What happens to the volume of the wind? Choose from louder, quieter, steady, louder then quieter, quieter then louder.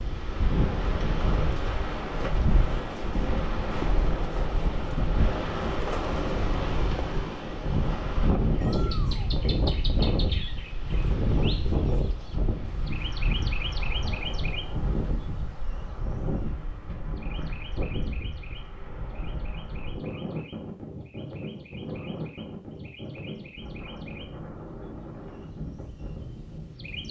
quieter.